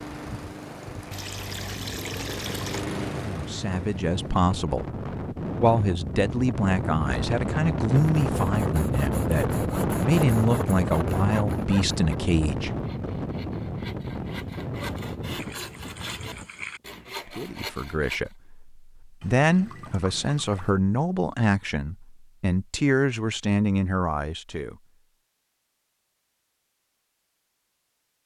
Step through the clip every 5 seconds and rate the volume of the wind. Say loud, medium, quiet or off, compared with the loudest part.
medium, loud, loud, medium, off, off.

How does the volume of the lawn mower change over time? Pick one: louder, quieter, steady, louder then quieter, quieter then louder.
louder then quieter.